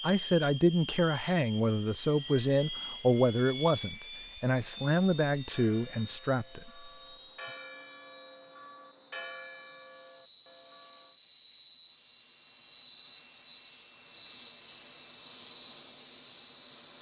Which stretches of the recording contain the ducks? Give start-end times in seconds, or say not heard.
not heard.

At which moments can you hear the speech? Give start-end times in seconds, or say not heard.
0.0-6.9.